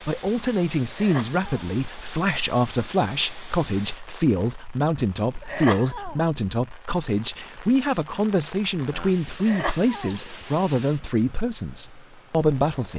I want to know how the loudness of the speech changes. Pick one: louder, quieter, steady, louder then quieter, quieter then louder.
steady.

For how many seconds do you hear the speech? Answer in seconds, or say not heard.
13 s.